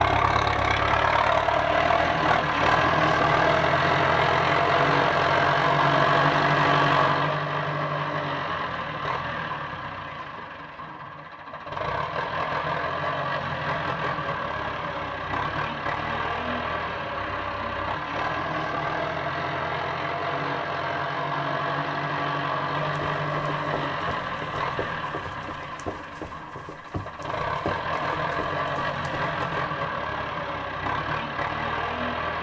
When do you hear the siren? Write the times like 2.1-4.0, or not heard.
not heard.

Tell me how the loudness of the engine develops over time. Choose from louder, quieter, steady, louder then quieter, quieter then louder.
quieter.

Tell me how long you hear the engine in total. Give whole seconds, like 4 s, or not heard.
32 s.